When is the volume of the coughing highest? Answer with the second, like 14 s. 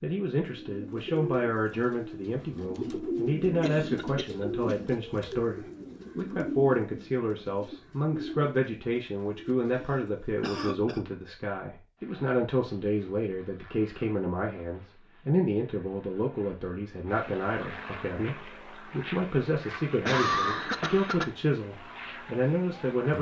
20 s.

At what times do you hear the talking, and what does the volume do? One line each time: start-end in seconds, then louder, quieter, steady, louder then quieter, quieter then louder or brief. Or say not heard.
0.0-23.1 steady.